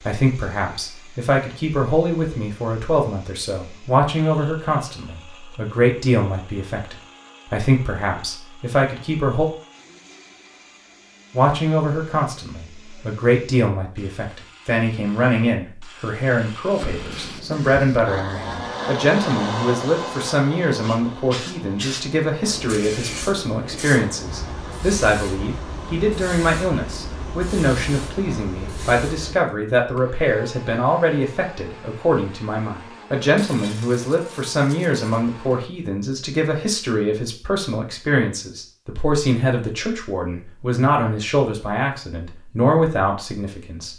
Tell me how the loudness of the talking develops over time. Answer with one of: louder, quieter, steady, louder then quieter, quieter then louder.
steady.